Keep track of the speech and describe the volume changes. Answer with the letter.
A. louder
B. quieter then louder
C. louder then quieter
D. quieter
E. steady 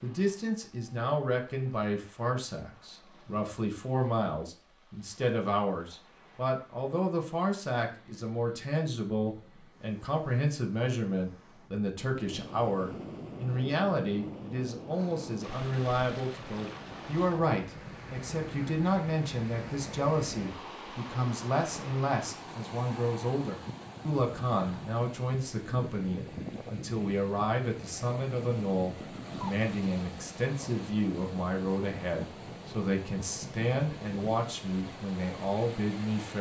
E.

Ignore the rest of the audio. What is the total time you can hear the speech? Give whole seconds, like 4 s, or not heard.
36 s.